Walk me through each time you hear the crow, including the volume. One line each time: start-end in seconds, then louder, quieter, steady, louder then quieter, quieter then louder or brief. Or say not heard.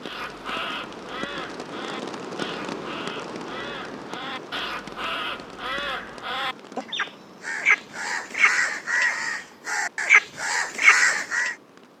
0.0-11.6 louder.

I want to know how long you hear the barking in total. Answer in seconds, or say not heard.
not heard.